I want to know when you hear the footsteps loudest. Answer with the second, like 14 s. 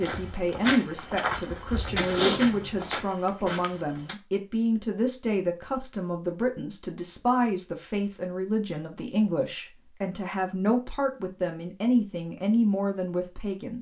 2 s.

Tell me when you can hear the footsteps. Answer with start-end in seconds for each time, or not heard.
0.0-4.2.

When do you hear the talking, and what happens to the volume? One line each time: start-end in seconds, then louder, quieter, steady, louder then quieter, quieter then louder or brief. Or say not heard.
0.0-13.7 steady.